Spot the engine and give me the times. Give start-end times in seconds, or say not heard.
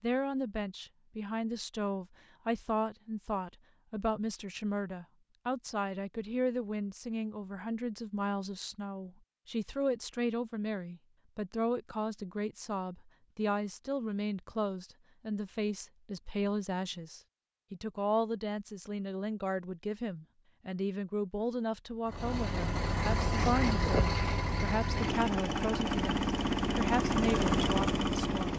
22.1-28.5.